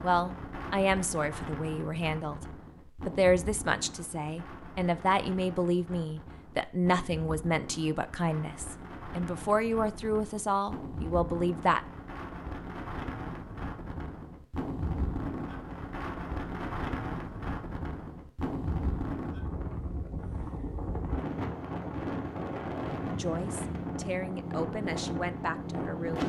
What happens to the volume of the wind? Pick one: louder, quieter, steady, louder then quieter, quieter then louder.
louder.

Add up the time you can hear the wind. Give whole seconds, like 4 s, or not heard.
26 s.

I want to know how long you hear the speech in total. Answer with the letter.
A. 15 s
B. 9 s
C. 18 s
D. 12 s
A.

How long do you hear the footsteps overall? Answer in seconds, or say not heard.
not heard.